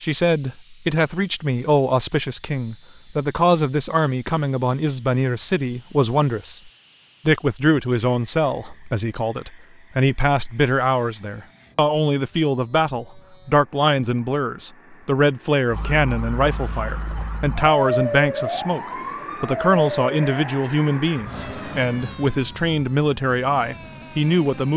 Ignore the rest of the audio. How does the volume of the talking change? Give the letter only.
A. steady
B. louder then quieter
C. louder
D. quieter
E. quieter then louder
A.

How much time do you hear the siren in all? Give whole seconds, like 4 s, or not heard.
9 s.